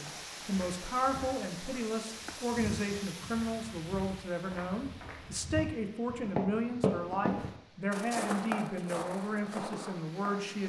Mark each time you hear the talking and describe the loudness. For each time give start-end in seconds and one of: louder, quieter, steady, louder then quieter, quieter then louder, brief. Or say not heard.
0.0-10.6 steady.